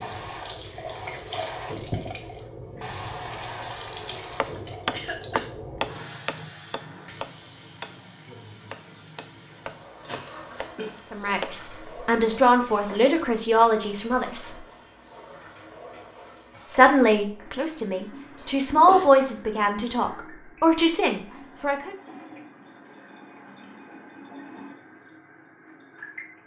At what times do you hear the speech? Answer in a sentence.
The speech can be heard from 11.1 to 14.6 s and from 16.7 to 21.9 s.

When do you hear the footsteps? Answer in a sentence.
The footsteps can't be heard in this clip.